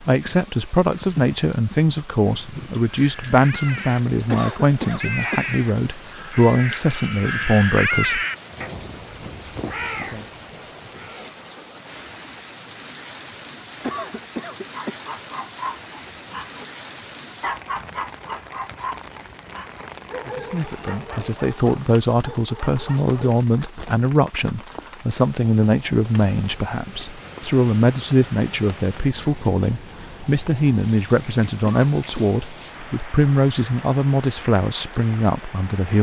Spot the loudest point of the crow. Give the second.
8 s.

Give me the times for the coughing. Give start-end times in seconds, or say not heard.
4.2-5.5, 13.8-15.1, 31.6-32.3.